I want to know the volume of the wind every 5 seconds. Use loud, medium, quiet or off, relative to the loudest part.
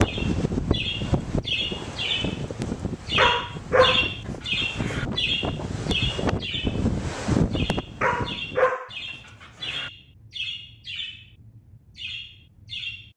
loud, loud, off.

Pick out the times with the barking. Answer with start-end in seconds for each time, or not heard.
3.1-5.0, 8.0-9.9.